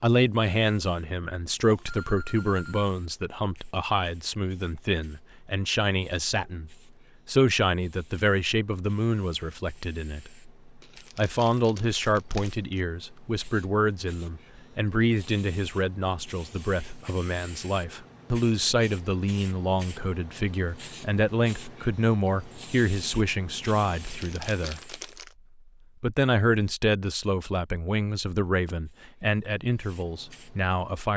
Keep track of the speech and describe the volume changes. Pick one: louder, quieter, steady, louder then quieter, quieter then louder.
steady.